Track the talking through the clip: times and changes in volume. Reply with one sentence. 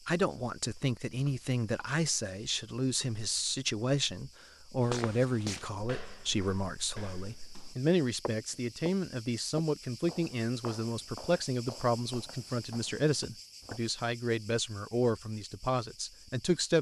You can hear the talking from 0.1 to 16.7 s, at a steady volume.